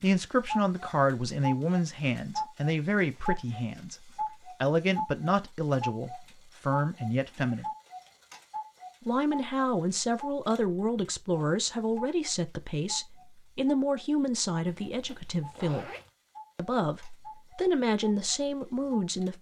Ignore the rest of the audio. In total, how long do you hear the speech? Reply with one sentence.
The speech can be heard for 17 seconds in total.